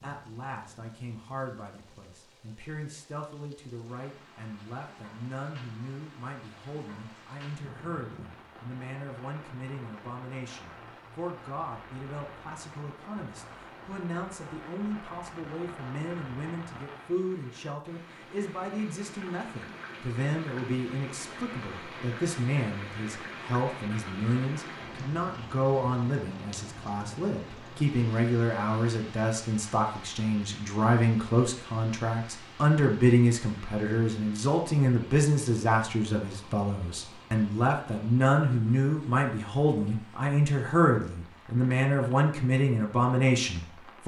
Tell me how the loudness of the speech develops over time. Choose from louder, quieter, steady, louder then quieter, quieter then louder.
louder.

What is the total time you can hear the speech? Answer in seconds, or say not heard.
44 s.